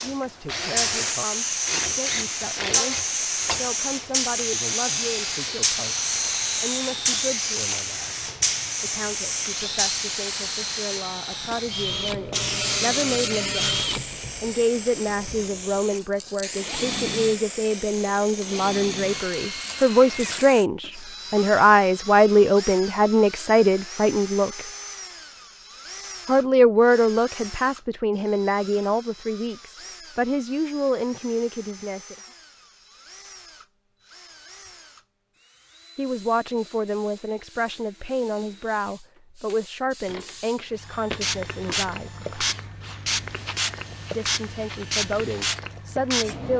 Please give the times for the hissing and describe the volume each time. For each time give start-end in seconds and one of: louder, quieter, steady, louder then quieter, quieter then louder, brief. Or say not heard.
0.0-20.6 quieter
36.0-46.5 louder.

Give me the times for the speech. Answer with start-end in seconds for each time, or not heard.
0.0-6.0, 6.5-8.2, 8.8-24.6, 26.2-32.1, 36.0-42.1, 44.1-46.5.